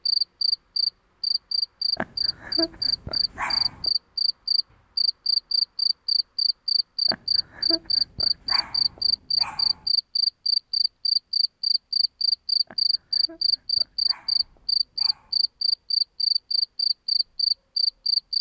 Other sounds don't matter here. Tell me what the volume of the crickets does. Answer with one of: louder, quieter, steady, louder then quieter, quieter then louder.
steady.